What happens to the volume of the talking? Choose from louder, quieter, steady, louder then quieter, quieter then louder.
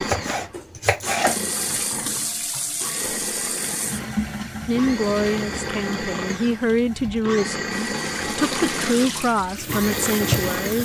steady.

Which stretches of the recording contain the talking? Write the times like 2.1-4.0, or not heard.
4.7-10.7.